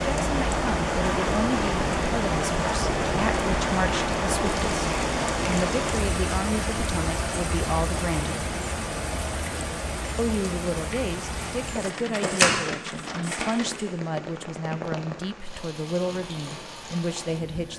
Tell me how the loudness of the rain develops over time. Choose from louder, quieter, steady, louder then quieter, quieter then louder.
quieter.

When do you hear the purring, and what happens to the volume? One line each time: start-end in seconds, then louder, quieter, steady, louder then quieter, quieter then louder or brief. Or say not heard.
not heard.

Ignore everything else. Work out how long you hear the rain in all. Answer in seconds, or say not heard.
18 s.